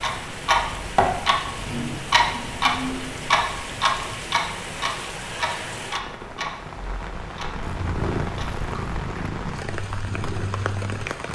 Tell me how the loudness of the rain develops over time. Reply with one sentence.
The volume of the rain stays about the same.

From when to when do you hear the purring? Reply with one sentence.
You can hear the purring from 7.6 to 11.3 s.